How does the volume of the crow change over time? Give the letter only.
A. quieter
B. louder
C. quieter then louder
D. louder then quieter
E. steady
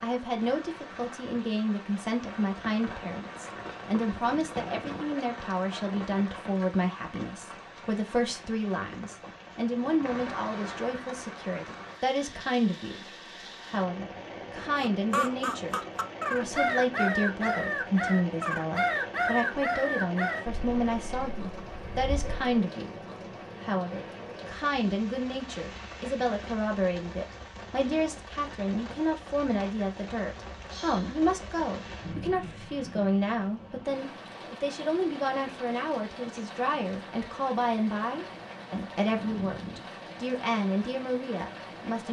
A.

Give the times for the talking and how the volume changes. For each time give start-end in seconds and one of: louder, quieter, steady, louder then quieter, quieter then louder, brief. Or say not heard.
0.0-42.0 steady.